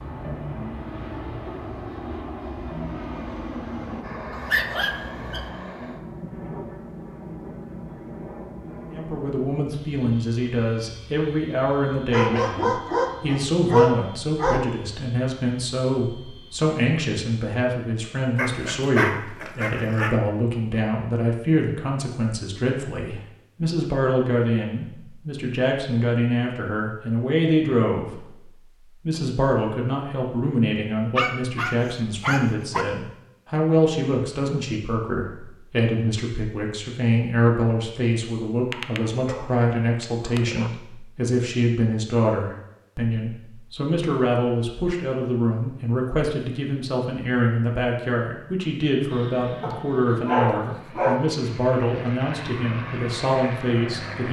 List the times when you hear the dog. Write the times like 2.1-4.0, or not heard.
4.3-5.5, 12.1-14.8, 18.4-20.1, 31.1-32.9, 38.7-40.7, 49.6-51.2.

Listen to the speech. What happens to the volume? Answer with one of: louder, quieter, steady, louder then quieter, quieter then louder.
steady.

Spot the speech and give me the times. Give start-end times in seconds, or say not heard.
8.9-28.4, 29.1-54.2.